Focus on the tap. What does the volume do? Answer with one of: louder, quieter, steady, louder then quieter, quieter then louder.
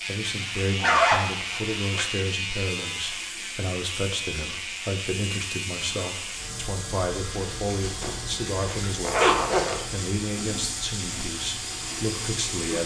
louder.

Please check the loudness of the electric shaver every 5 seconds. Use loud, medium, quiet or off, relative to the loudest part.
loud, medium, medium.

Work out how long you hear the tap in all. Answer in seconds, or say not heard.
13 s.